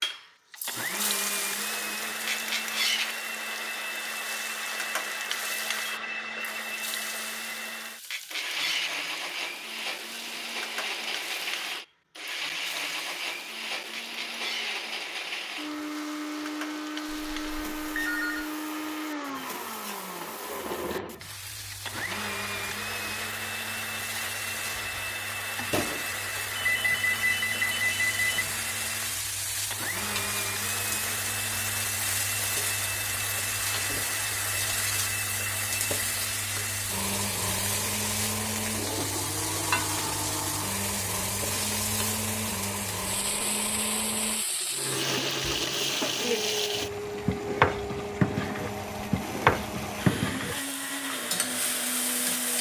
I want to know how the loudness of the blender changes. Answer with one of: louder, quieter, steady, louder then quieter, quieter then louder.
steady.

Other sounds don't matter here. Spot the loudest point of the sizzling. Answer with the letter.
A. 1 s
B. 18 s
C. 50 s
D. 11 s
C.